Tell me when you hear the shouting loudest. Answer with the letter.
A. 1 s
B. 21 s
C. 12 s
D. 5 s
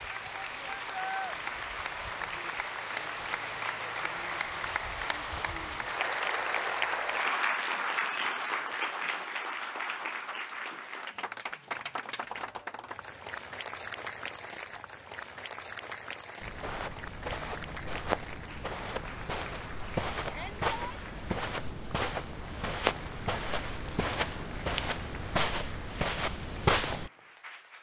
A.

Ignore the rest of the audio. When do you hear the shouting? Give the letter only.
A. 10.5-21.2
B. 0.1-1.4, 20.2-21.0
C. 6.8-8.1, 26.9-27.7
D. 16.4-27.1
B.